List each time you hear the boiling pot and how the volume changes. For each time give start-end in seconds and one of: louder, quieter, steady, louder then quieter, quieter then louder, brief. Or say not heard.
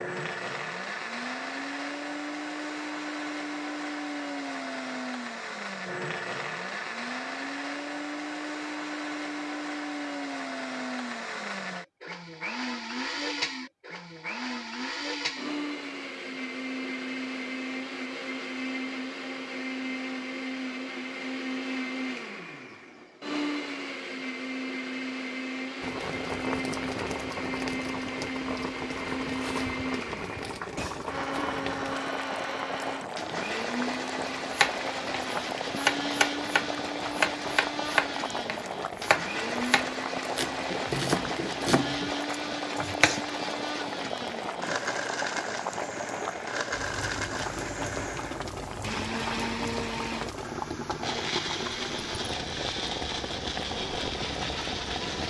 25.8-55.2 steady.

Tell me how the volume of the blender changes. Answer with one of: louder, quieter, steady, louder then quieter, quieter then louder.
steady.